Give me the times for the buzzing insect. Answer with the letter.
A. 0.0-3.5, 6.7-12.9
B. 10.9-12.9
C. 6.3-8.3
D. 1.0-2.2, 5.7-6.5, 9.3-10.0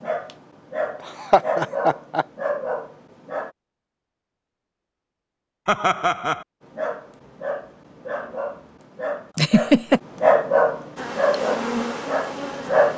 B.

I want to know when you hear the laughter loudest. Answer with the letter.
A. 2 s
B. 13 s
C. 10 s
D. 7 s
C.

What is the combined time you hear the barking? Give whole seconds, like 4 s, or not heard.
10 s.